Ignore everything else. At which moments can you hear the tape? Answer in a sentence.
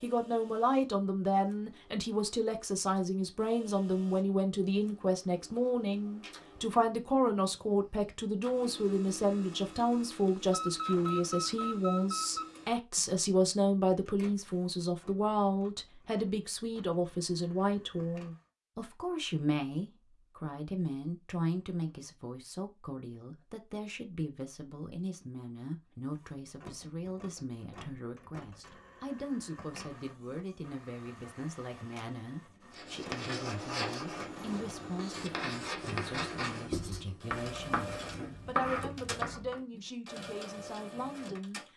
You can't hear the tape here.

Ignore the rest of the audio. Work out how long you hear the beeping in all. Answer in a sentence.
You can hear the beeping for 2 seconds altogether.